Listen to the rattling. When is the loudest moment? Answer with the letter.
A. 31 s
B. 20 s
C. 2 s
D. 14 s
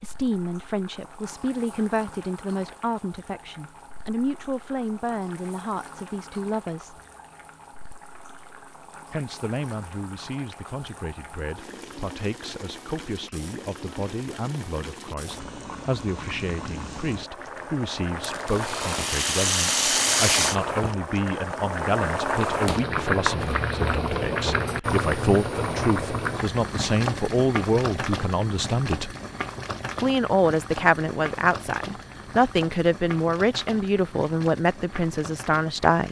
B.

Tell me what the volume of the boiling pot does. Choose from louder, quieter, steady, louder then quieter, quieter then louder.
louder then quieter.